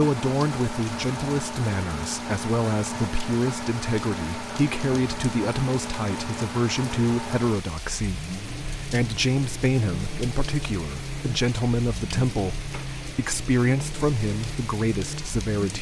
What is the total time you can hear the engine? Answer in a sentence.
You can hear the engine for 16 seconds altogether.